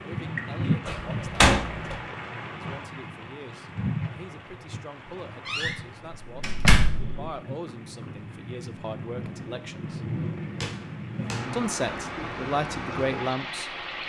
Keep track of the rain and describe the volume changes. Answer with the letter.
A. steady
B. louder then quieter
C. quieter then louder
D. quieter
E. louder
C.